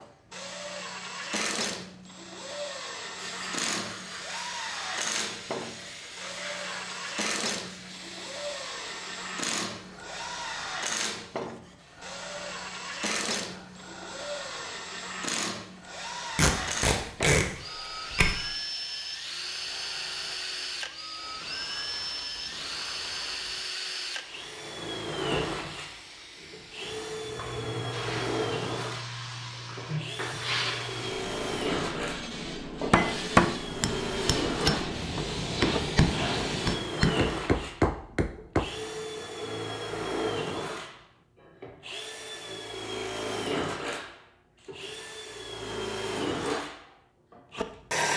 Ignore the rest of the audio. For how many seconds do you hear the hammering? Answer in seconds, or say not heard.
6 s.